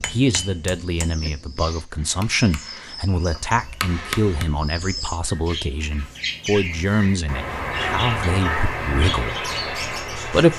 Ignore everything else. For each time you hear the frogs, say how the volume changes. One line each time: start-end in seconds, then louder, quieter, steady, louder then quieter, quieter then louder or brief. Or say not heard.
not heard.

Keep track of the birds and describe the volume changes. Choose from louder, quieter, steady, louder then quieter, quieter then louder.
louder.